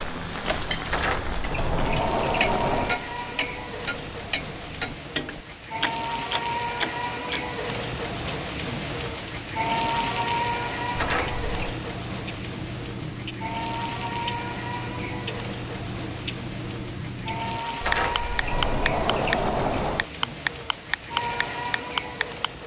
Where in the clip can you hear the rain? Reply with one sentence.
You can hear the rain from 0.0 to 22.6 s.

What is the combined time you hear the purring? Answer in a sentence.
You can't hear the purring here.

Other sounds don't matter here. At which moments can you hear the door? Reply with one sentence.
You can hear the door from 0.8 to 3.0 s, from 10.9 to 11.8 s and from 17.8 to 20.1 s.